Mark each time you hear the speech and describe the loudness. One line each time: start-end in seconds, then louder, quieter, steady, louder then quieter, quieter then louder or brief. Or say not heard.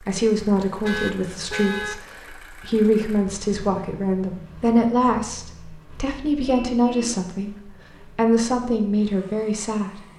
0.0-10.0 steady.